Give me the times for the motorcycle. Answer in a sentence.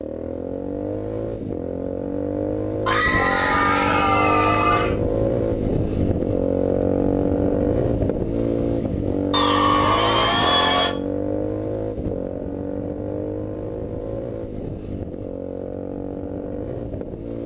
You can hear the motorcycle from 0.0 to 17.4 s.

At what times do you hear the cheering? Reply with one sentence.
You can hear the cheering from 2.9 to 5.0 s and from 9.3 to 10.9 s.